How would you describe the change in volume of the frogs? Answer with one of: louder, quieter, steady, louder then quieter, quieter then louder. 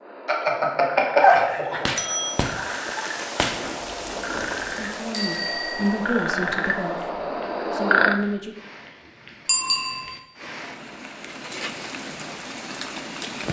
louder.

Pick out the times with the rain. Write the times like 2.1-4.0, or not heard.
2.2-13.4.